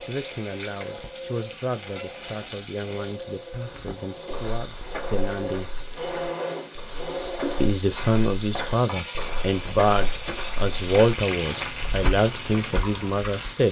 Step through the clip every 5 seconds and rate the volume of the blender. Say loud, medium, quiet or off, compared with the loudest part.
medium, loud, off.